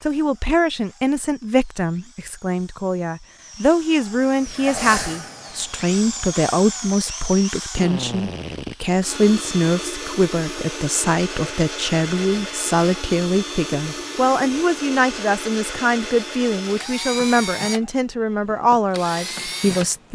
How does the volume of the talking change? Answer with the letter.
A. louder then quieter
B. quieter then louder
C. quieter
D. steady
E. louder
D.